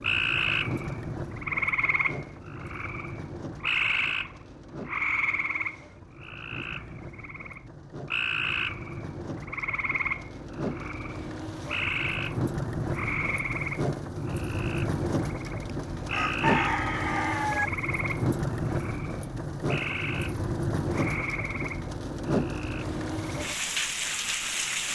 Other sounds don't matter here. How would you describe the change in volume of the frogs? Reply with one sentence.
The loudness of the frogs goes down.